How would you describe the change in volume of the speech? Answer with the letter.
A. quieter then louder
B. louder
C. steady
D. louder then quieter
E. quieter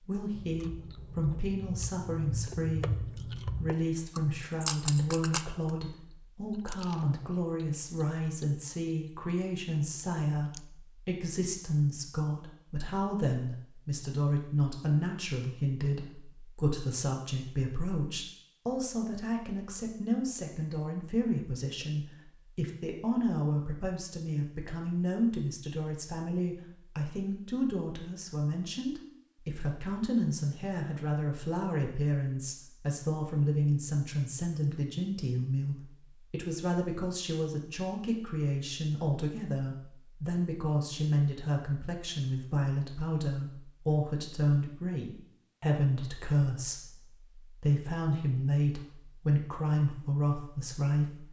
C.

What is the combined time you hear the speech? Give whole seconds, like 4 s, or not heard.
51 s.